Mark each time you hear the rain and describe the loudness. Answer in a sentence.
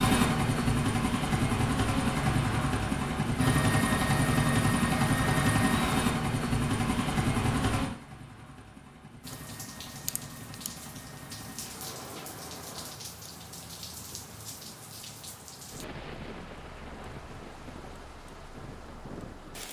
You can hear the rain from 9.2 to 19.6 s, at a steady volume.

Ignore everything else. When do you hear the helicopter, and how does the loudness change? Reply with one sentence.
The helicopter can be heard from 0.0 to 12.9 s, getting quieter.